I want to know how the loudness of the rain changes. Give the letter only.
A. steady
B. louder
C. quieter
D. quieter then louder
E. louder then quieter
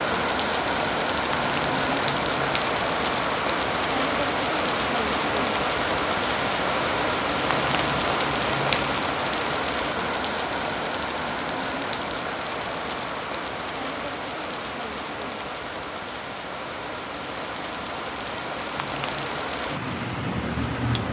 C.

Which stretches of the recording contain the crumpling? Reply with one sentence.
The crumpling can be heard from 1.3 to 2.7 s, from 7.5 to 9.1 s and from 18.8 to 19.4 s.